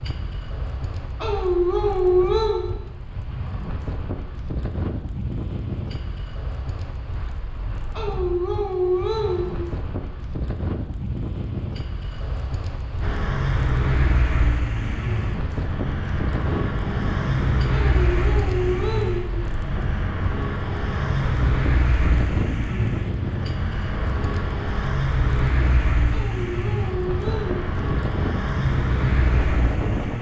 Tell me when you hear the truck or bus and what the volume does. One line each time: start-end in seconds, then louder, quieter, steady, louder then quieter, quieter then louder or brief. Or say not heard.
13.0-30.1 steady.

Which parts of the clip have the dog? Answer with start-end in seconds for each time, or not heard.
1.2-2.7, 7.9-9.6, 17.7-19.4, 26.1-27.8.